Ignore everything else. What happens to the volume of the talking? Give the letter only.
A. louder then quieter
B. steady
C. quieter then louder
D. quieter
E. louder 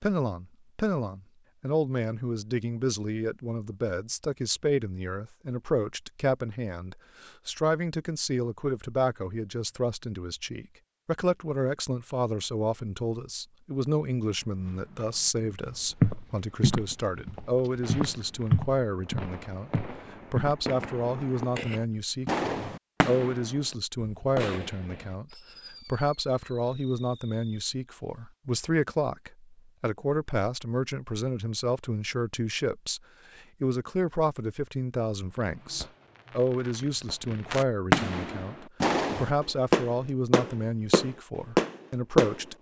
B.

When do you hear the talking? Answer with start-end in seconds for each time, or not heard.
0.0-42.5.